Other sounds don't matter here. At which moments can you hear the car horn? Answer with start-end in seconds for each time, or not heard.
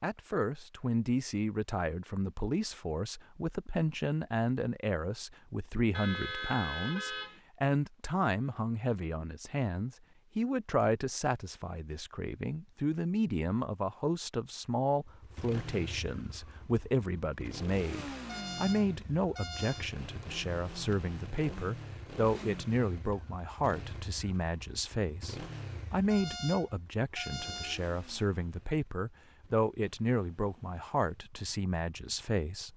5.9-7.4, 18.2-19.9, 26.1-27.9.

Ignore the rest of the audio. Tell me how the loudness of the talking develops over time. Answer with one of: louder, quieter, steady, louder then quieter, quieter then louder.
steady.